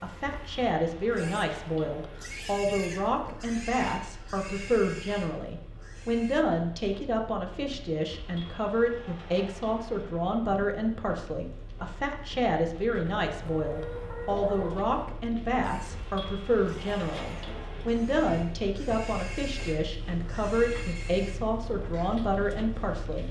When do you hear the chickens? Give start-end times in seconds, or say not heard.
13.1-15.1.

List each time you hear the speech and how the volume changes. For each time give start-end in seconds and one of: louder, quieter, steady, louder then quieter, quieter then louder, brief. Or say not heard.
0.0-23.2 steady.